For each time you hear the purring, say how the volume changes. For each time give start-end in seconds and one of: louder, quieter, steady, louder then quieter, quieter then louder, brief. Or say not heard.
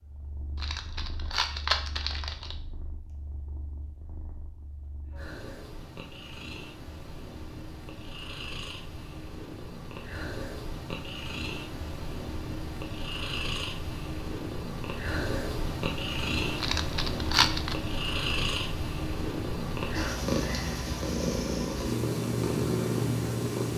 0.0-23.7 louder.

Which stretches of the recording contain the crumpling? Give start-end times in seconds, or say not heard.
0.6-2.5, 16.6-17.8.